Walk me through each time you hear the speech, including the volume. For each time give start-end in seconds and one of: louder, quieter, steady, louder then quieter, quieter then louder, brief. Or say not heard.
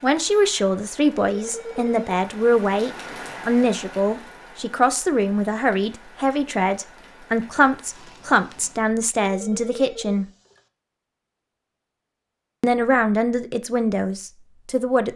0.0-10.2 steady
12.6-15.1 brief.